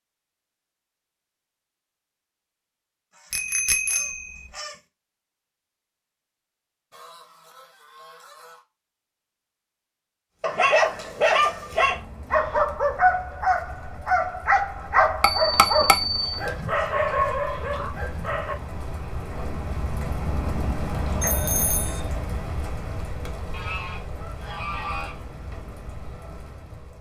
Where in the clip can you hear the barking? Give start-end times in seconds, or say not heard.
10.4-18.6.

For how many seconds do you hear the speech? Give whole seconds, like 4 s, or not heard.
not heard.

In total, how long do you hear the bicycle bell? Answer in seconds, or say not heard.
3 s.